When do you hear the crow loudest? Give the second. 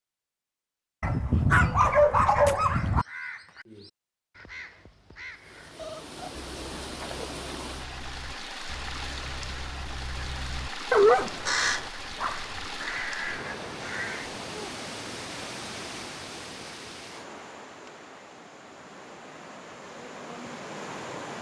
12 s.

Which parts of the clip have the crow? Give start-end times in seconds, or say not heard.
2.6-14.3.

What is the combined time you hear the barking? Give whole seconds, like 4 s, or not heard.
3 s.